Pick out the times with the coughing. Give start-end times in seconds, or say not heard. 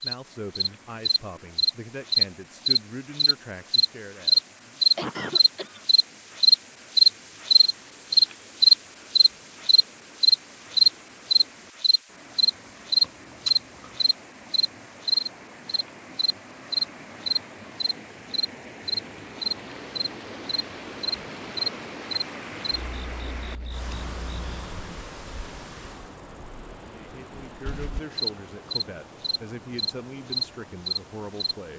5.0-6.0, 13.0-14.1, 23.9-25.0.